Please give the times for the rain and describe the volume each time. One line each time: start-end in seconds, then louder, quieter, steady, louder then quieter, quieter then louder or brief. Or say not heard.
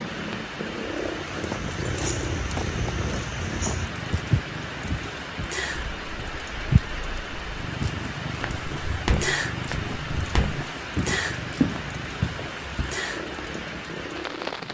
0.0-14.6 steady.